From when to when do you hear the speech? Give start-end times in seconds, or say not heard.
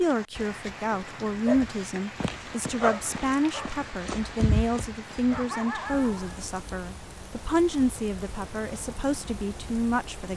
0.0-10.3.